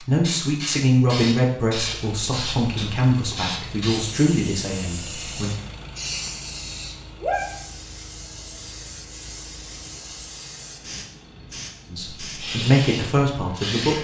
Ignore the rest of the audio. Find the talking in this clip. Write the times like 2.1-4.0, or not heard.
0.0-5.5, 11.9-13.9.